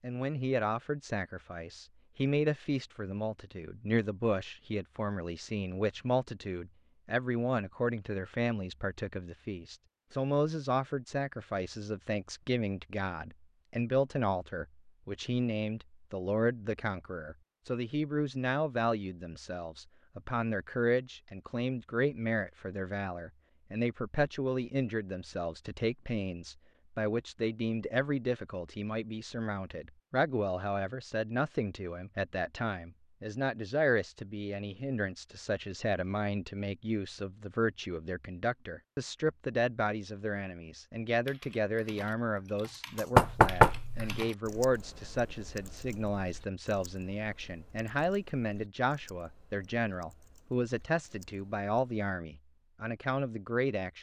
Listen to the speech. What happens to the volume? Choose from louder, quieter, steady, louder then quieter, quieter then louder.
steady.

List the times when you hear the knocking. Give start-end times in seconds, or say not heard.
43.1-44.1.